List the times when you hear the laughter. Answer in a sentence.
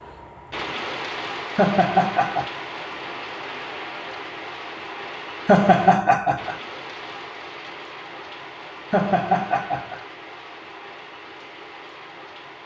You can hear the laughter from 1.6 to 2.5 s, from 5.5 to 6.5 s and from 8.9 to 10.0 s.